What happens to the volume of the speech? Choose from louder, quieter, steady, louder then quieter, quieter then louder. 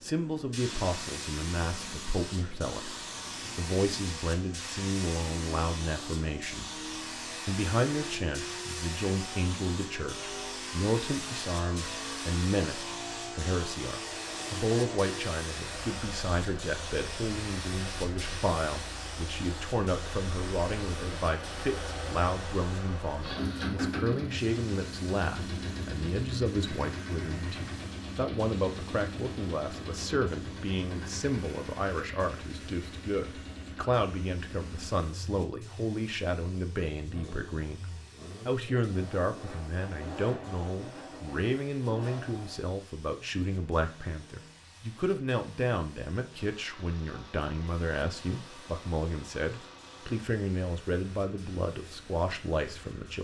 steady.